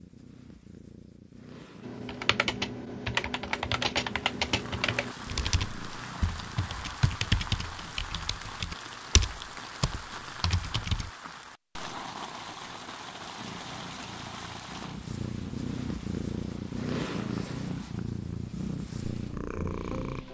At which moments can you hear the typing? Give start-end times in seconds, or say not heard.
1.8-11.1.